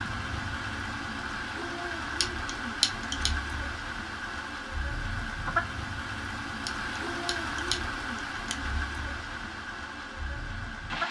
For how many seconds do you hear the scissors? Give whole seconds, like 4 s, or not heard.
3 s.